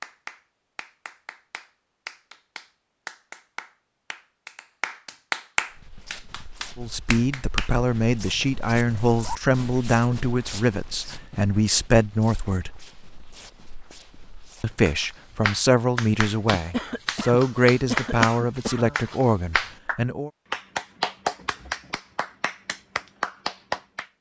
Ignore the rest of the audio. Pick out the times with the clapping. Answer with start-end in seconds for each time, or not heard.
0.0-7.8, 14.8-24.1.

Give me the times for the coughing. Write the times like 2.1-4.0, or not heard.
16.6-19.1.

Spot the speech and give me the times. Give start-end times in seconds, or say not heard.
6.8-12.8, 14.6-20.3.